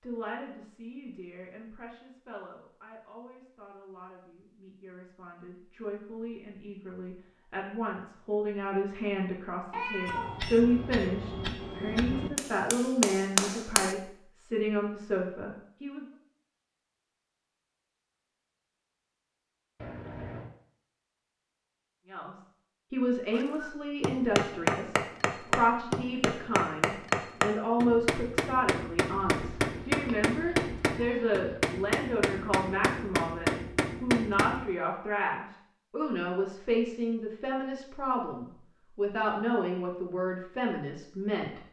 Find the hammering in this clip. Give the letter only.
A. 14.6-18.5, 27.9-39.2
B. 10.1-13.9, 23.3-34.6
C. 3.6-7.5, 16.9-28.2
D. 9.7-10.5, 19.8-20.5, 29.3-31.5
B.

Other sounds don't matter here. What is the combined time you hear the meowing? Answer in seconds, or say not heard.
4 s.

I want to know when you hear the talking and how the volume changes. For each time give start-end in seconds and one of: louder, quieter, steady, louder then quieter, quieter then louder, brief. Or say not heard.
0.0-16.1 louder
22.1-41.6 steady.